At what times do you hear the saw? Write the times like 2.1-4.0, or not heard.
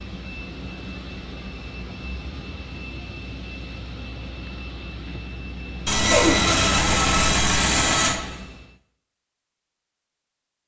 5.8-8.2.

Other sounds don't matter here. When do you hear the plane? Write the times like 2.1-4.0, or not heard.
0.0-8.8.